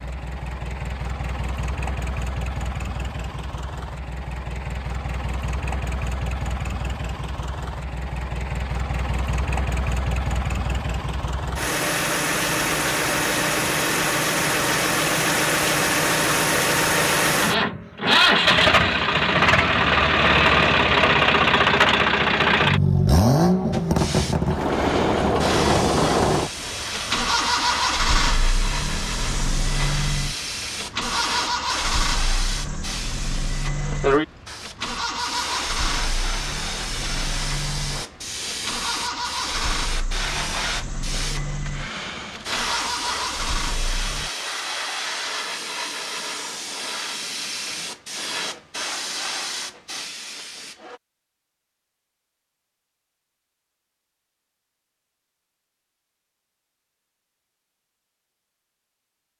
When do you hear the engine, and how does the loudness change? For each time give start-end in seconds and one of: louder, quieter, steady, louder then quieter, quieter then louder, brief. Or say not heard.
0.0-44.3 louder then quieter.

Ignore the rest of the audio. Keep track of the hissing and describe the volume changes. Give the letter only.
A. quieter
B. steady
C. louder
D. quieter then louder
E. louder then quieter
B.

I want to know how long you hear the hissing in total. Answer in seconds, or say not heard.
27 s.